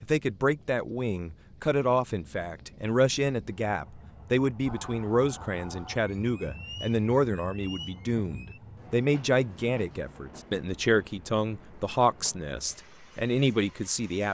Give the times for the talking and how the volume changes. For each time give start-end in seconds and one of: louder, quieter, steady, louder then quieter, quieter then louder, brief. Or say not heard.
0.0-14.2 steady.